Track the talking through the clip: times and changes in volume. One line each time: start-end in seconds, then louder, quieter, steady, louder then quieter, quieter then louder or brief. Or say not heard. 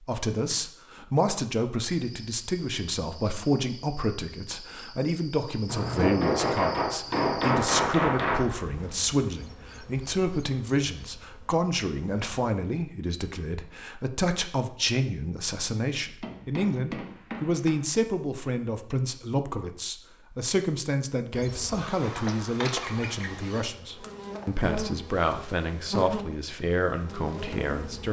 0.0-28.0 steady.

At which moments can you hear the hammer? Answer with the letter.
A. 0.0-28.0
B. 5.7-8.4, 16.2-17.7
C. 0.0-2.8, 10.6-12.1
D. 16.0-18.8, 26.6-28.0
B.